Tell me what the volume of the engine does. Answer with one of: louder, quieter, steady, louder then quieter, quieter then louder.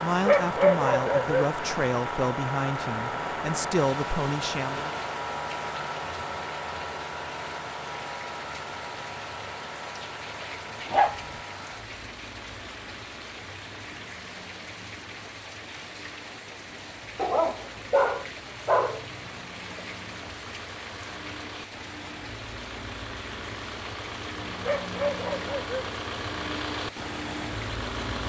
quieter then louder.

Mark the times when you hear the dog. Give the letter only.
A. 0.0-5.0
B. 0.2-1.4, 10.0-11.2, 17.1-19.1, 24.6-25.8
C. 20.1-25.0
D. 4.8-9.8
B.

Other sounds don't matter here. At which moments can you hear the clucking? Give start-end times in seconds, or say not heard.
not heard.